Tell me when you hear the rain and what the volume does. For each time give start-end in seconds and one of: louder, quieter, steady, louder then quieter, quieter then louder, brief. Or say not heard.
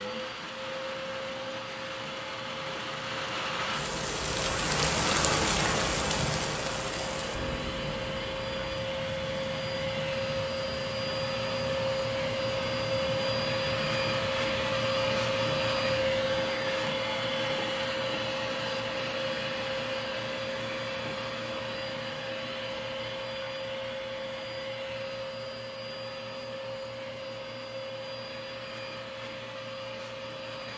0.0-17.0 louder then quieter.